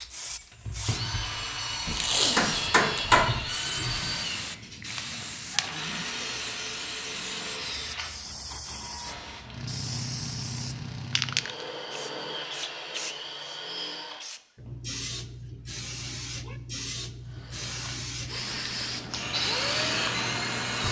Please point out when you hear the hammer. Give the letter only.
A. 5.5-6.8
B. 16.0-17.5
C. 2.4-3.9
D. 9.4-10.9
C.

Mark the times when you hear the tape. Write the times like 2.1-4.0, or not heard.
1.9-3.1.